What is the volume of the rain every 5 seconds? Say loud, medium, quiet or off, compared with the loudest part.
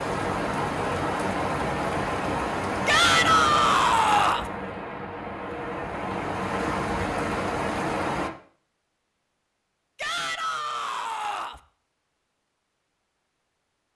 loud, loud, off.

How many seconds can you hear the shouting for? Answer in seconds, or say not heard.
3 s.